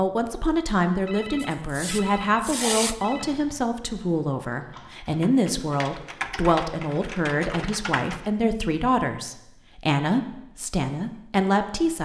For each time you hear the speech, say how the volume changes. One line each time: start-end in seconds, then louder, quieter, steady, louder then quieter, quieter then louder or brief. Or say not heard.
0.0-12.0 steady.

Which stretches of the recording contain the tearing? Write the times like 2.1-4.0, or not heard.
1.4-3.0.